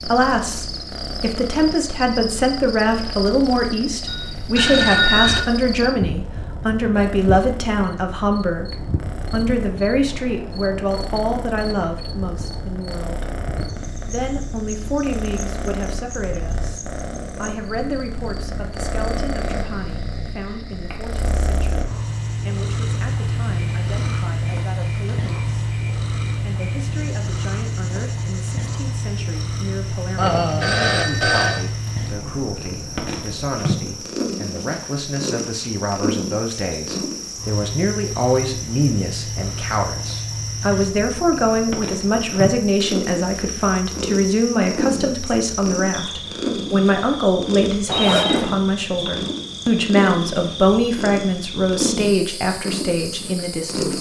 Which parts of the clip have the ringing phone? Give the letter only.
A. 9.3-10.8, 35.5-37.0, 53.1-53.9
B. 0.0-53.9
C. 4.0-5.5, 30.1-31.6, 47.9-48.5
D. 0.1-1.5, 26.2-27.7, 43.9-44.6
C.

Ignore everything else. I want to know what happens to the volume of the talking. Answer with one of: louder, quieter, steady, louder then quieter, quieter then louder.
quieter then louder.